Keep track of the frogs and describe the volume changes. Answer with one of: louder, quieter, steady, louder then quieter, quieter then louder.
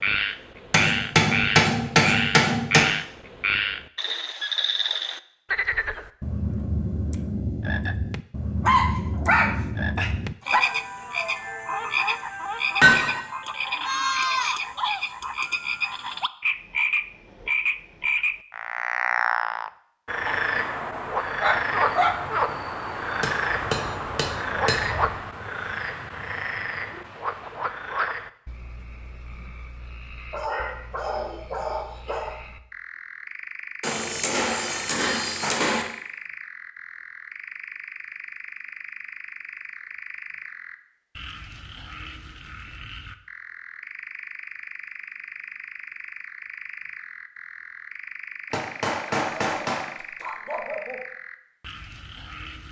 quieter.